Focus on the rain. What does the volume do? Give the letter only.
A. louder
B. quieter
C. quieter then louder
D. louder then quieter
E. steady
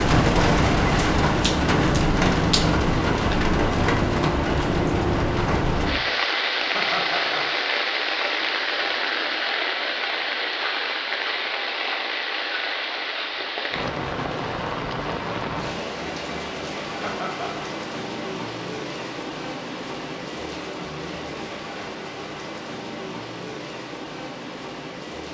B.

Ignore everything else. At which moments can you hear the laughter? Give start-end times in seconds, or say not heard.
6.7-7.5, 17.0-17.6.